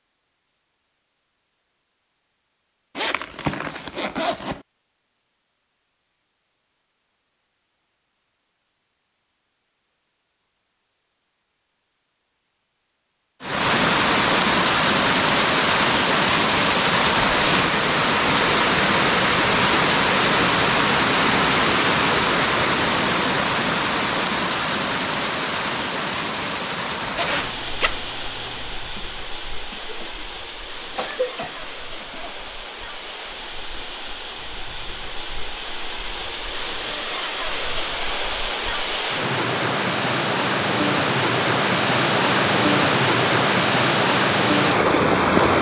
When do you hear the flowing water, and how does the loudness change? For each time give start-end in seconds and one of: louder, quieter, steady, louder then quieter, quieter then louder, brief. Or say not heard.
13.4-45.5 quieter then louder.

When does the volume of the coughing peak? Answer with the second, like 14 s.
31 s.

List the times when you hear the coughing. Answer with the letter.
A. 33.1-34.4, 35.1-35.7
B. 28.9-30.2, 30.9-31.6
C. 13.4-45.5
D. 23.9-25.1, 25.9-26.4
B.